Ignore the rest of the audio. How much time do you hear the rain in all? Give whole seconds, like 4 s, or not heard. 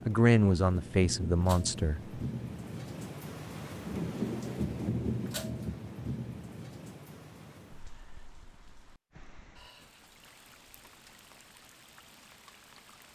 13 s.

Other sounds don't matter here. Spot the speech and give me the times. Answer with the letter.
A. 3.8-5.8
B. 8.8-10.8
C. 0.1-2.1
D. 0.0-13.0
C.